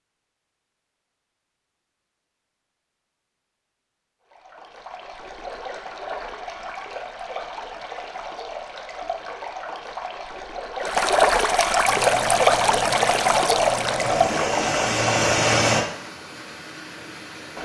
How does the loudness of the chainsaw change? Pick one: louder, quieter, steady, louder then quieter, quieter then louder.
louder.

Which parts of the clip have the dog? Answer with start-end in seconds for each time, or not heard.
not heard.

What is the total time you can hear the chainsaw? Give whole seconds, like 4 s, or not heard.
4 s.